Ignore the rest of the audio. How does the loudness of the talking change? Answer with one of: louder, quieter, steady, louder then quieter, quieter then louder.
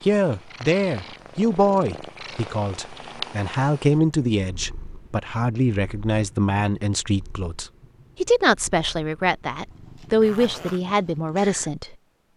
steady.